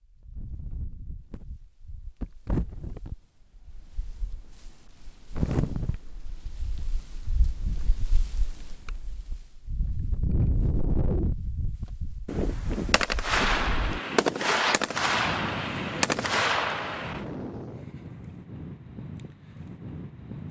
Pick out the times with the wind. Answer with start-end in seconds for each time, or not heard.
0.0-20.4.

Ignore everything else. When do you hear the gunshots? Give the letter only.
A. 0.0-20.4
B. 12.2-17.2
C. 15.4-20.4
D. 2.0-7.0
B.